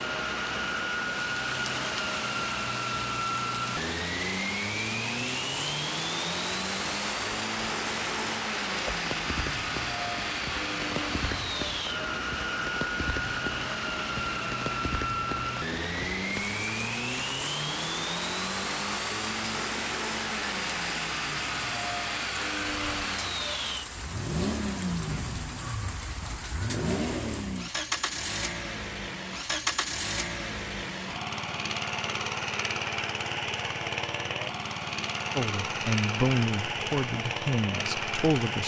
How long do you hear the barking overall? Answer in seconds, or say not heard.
not heard.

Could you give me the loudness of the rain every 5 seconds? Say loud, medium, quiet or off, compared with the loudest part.
loud, loud, loud, loud, loud, loud, off, off.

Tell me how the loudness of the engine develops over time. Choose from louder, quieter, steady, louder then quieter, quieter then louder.
steady.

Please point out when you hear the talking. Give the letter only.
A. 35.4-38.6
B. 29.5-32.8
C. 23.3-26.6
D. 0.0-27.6
A.